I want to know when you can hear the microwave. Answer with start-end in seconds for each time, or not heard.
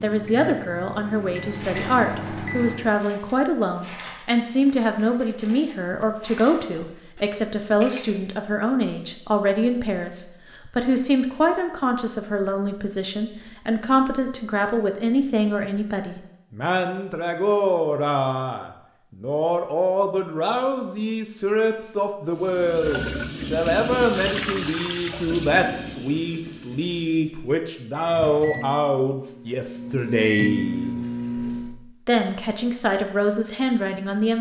0.0-3.0, 27.9-31.8.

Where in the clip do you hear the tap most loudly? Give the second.
24 s.